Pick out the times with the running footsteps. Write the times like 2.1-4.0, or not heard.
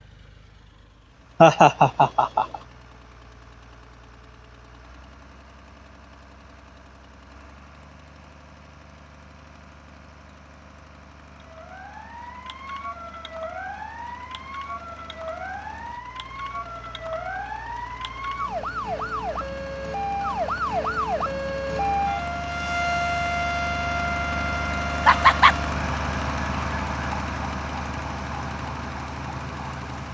not heard.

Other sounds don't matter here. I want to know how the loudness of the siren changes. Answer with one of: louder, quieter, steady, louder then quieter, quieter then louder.
louder then quieter.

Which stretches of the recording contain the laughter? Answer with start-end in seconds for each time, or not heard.
1.4-2.5, 25.1-25.6.